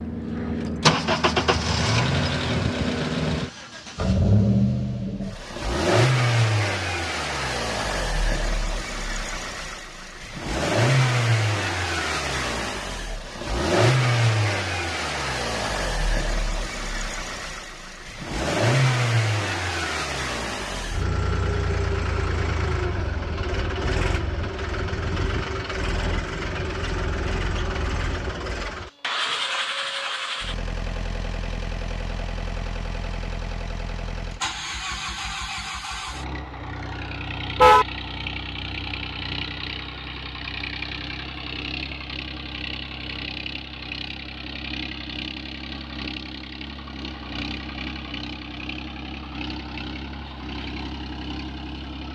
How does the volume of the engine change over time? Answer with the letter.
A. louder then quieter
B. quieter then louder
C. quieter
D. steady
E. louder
C.